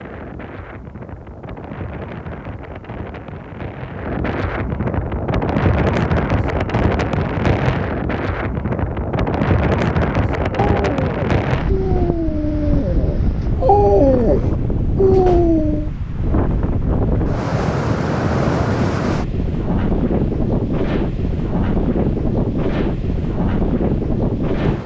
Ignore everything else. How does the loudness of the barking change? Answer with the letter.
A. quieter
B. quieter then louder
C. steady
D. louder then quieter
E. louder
E.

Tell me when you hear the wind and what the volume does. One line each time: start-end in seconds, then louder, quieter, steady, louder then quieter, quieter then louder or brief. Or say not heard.
0.0-24.8 louder.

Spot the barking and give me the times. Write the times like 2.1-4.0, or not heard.
10.5-15.9.